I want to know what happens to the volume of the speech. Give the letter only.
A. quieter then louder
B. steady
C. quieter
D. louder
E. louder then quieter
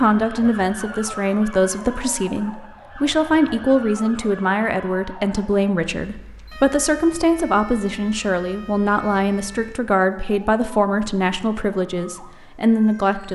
B.